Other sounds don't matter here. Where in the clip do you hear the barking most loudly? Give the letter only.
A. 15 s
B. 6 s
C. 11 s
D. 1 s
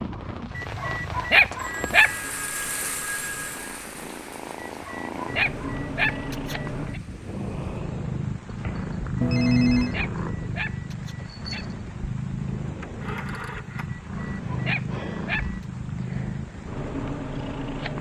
D.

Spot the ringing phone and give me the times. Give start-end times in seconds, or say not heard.
1.6-3.6, 9.2-9.9, 12.8-13.9.